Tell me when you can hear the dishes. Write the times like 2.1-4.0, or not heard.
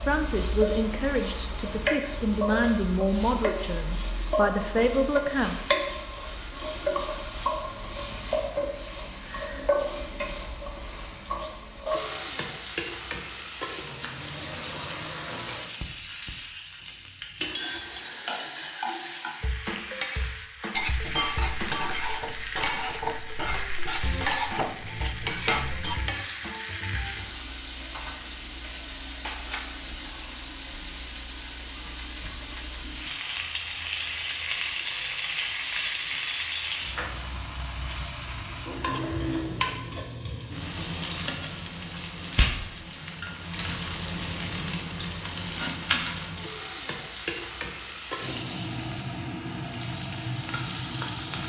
20.8-26.1.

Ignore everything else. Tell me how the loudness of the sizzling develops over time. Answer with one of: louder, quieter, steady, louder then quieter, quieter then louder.
steady.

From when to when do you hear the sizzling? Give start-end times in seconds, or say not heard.
0.0-51.4.